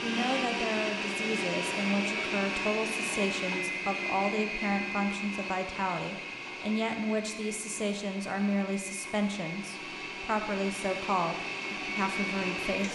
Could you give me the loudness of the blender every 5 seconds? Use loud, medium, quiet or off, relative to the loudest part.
loud, medium, loud.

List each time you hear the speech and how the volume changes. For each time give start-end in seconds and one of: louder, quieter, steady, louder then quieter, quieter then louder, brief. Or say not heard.
0.0-12.8 steady.